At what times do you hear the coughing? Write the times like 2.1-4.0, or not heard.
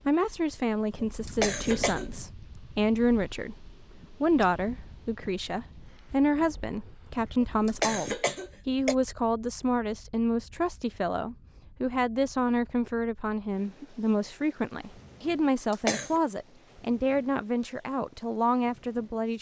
1.0-2.1, 7.4-8.9, 15.7-16.2.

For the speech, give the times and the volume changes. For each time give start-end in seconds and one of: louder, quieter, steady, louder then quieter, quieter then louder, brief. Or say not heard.
0.1-19.3 steady.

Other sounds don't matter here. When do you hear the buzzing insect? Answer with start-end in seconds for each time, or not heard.
not heard.